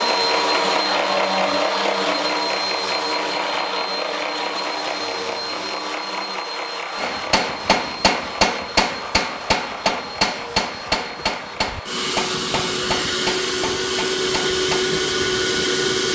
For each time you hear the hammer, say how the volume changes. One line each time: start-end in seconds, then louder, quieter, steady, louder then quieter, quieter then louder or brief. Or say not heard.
7.0-14.8 quieter.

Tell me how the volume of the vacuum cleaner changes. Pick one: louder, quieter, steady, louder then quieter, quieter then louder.
quieter then louder.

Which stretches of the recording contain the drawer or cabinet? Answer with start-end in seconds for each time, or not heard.
not heard.